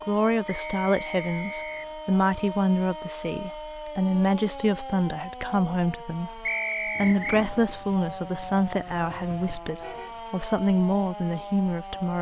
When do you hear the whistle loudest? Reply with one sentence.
The loudest moment of the whistle is at 7 seconds.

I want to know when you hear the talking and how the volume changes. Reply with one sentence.
You can hear the talking from 0.0 to 12.1 s, at a steady volume.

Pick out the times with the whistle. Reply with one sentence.
You can hear the whistle from 0.5 to 1.9 s and from 6.5 to 7.2 s.